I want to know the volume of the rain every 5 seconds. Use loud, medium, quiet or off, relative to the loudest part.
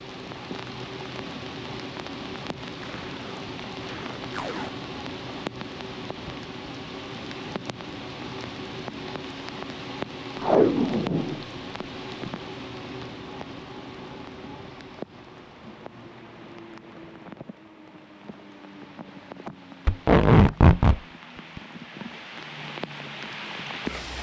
loud, loud, loud, medium, loud.